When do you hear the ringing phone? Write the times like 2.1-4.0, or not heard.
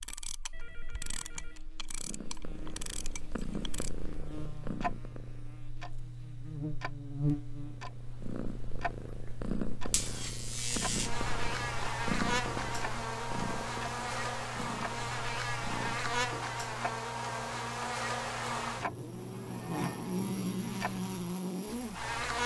0.5-1.6.